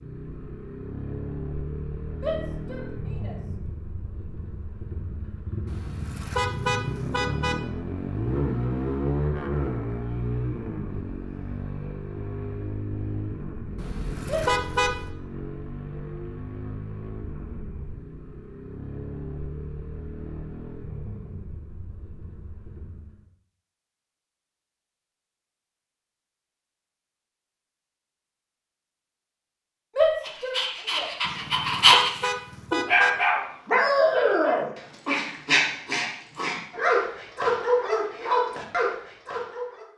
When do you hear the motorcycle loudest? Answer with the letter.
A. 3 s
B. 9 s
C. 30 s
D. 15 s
B.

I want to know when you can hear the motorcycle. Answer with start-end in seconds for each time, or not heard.
0.0-23.3.